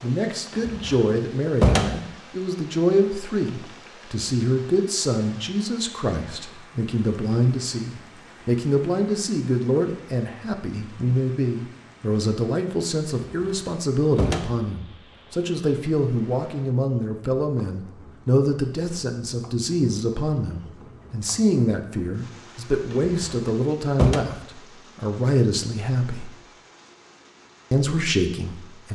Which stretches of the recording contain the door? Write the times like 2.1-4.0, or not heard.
0.5-2.0, 13.1-14.7, 22.9-24.2.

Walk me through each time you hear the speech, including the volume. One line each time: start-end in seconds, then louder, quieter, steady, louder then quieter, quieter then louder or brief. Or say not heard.
0.0-26.3 steady
27.7-28.9 brief.